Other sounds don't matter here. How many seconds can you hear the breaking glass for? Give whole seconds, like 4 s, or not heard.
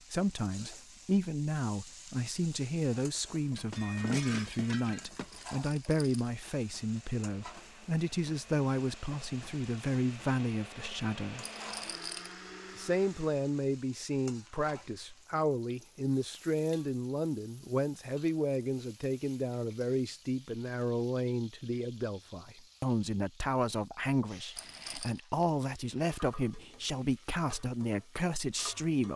2 s.